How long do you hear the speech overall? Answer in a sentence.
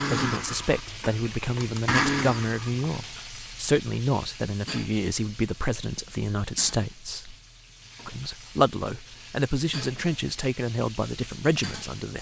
You can hear the speech for 11 seconds altogether.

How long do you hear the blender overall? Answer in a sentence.
You can hear the blender for 3 seconds altogether.